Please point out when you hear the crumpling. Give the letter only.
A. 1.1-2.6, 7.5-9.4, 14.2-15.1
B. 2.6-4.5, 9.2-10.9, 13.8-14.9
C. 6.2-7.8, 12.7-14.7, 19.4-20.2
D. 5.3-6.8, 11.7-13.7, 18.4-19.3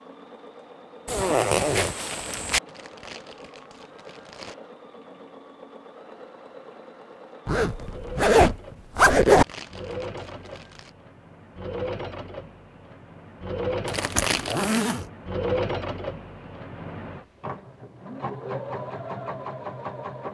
B.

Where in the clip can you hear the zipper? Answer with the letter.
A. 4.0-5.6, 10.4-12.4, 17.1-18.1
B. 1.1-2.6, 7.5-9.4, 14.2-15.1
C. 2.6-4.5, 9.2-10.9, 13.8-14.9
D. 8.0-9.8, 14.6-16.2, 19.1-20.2
B.